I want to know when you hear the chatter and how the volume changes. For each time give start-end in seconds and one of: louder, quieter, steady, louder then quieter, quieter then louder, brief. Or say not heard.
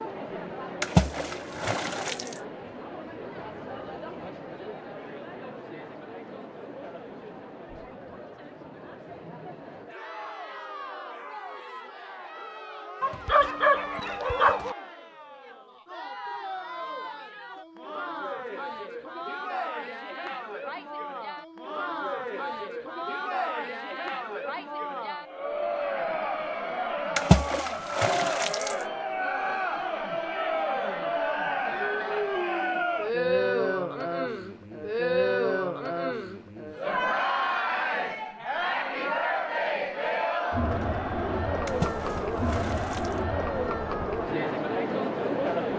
0.0-45.7 louder.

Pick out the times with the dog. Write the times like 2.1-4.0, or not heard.
13.0-14.8.